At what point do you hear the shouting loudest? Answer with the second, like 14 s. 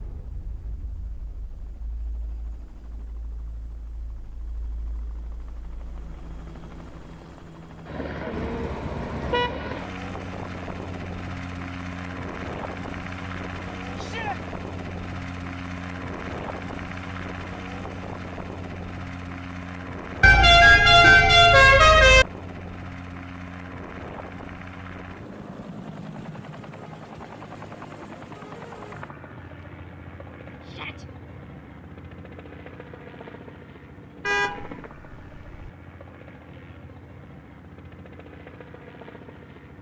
14 s.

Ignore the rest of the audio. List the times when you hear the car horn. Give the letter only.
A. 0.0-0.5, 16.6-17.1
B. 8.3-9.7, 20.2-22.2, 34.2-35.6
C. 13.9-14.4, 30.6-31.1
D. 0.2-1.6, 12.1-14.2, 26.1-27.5
B.